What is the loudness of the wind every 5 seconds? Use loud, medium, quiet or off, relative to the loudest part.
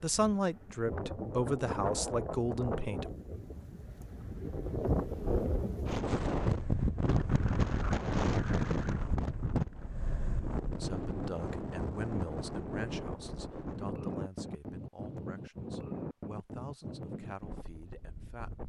medium, loud, medium, medium.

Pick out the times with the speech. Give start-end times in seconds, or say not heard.
0.0-3.1, 10.8-18.6.